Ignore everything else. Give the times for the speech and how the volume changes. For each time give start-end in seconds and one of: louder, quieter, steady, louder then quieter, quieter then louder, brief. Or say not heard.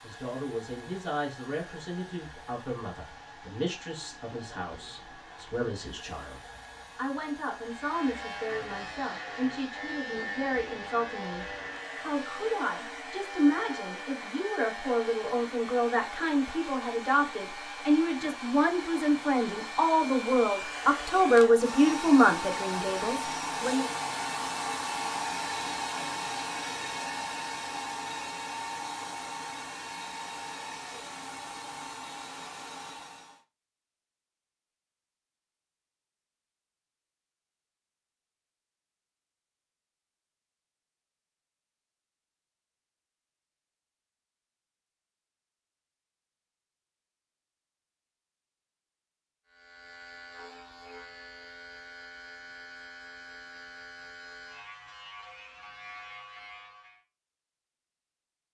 0.0-23.9 louder.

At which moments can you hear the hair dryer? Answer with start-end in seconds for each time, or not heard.
0.0-33.5.